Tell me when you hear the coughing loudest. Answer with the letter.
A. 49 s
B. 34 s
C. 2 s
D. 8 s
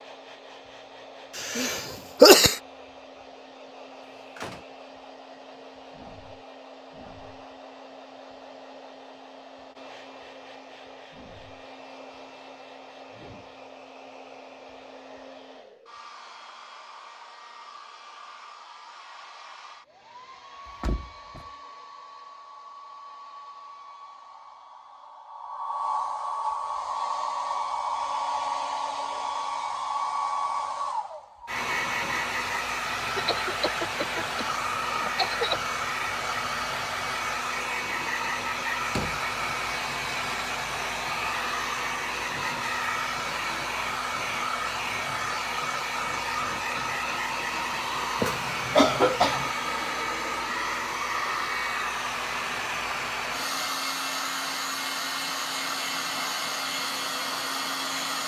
C.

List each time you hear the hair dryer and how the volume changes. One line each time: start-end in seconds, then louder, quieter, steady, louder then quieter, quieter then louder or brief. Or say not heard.
0.0-58.2 louder.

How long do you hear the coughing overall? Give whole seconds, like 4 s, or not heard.
5 s.